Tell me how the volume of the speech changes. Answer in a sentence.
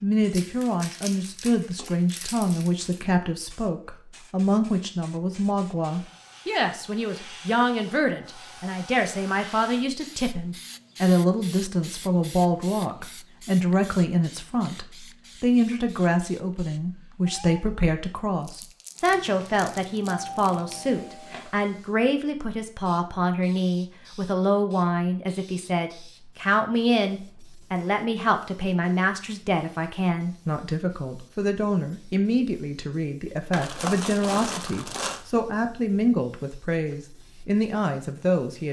The loudness of the speech stays about the same.